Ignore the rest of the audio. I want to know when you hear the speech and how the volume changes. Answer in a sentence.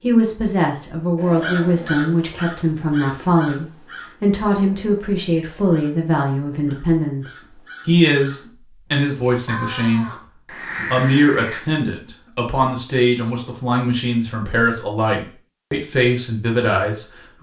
You can hear the speech from 0.0 to 17.3 s, at a steady volume.